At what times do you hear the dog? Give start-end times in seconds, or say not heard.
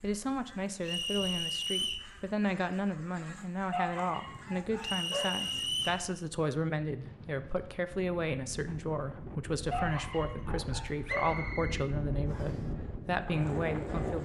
3.7-5.3, 9.7-11.3.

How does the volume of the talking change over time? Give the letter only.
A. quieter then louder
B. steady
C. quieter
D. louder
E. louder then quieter
B.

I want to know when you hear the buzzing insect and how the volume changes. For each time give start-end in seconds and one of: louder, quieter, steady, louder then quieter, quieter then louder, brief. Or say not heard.
not heard.